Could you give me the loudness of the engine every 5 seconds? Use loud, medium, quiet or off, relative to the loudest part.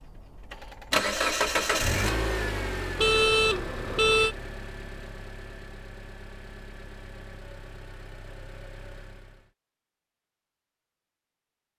loud, quiet, off.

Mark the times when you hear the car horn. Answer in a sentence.
The car horn can be heard from 3.0 to 4.3 s.